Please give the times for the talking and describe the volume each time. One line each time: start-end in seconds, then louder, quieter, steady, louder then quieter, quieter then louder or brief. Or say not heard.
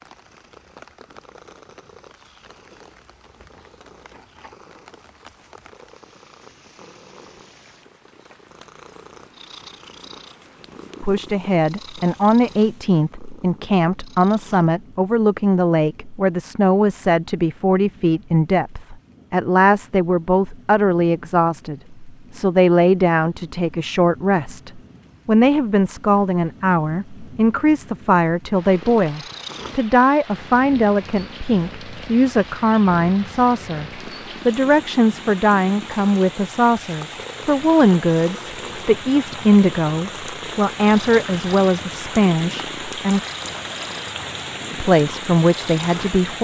11.0-43.2 steady
44.7-46.3 brief.